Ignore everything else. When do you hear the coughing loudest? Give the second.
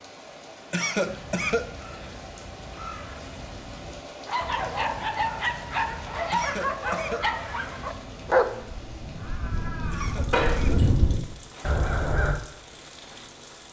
1 s.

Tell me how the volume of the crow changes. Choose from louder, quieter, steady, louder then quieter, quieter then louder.
louder.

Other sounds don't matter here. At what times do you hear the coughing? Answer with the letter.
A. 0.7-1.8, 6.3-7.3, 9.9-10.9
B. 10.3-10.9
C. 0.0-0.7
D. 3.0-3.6
A.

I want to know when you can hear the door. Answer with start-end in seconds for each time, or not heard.
10.3-10.9.